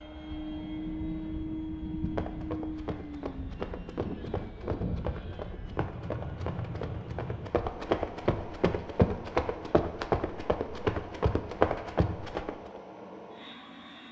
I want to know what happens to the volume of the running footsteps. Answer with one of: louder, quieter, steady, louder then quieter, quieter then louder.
louder.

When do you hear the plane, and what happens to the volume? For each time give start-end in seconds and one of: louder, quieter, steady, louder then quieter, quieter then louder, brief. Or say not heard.
0.0-14.0 quieter.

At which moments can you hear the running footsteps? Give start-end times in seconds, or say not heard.
2.0-12.8.